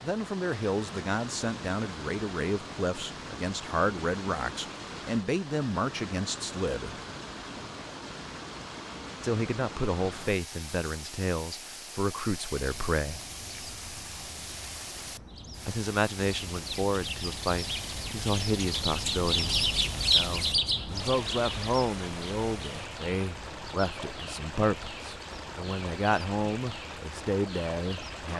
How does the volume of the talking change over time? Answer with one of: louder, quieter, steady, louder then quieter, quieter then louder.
steady.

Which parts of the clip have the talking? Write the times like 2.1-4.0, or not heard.
0.0-7.0, 9.2-13.2, 15.7-28.3.